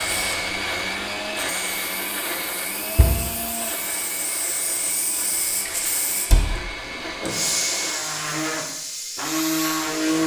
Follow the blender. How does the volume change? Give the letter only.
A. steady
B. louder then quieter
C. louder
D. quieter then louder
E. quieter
D.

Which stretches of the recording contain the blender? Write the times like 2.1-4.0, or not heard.
0.0-10.2.